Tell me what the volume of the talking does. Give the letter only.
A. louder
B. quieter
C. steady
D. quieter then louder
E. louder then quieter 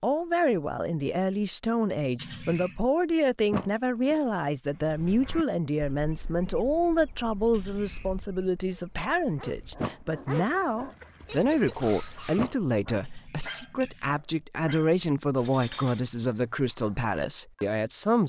C.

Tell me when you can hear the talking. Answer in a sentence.
The talking can be heard from 0.0 to 18.2 s.